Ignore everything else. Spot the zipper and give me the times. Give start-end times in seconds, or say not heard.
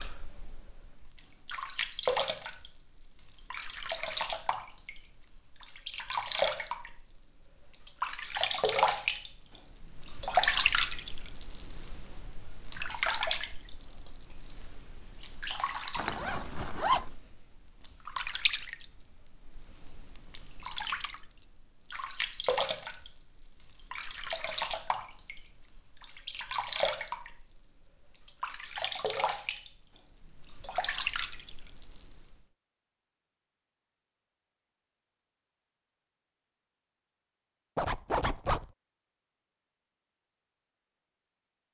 15.9-17.1, 37.8-38.6.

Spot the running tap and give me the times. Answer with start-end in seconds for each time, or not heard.
0.0-32.5.